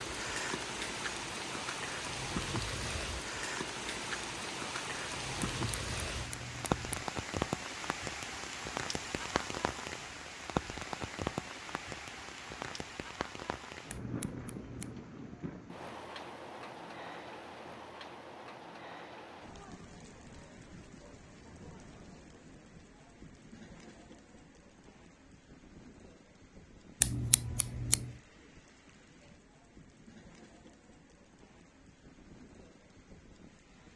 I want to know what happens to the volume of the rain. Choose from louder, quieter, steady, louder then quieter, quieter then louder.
quieter.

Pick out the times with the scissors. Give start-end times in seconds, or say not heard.
5.4-7.0, 13.9-14.9, 27.0-28.1.